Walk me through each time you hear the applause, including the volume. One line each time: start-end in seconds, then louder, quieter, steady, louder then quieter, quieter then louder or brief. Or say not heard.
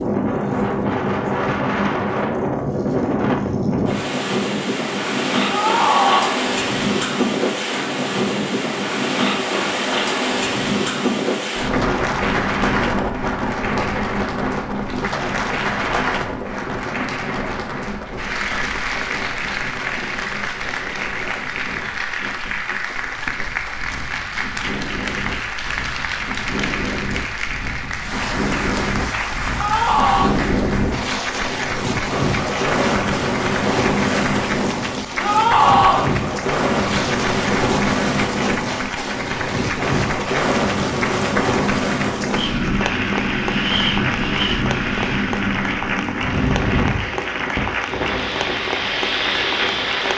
11.6-50.1 steady.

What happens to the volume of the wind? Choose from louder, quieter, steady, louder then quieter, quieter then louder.
quieter then louder.